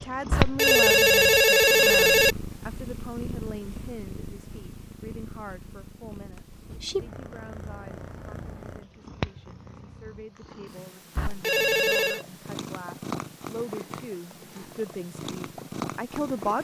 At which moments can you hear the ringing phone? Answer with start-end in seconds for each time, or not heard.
0.3-2.4, 11.2-12.2.